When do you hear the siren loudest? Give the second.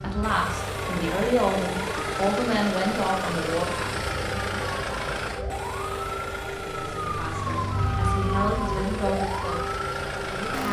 8 s.